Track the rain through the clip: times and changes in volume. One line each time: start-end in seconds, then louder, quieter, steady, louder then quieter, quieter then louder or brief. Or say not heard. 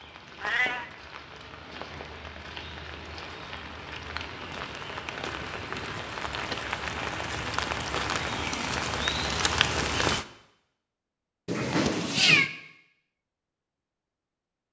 0.0-10.2 louder.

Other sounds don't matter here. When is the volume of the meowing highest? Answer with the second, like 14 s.
12 s.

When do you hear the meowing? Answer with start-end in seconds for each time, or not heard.
0.4-0.8, 11.4-12.5.